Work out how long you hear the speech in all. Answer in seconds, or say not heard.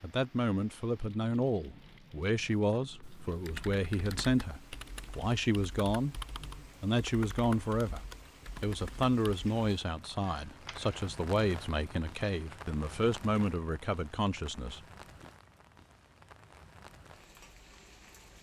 15 s.